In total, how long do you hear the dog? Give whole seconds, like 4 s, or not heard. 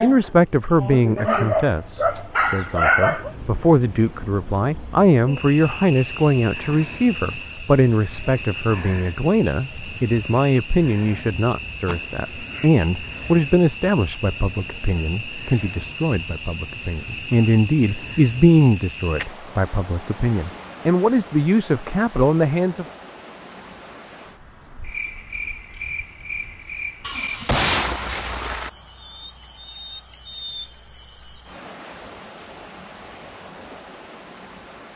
2 s.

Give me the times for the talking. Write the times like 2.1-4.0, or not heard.
0.0-22.9.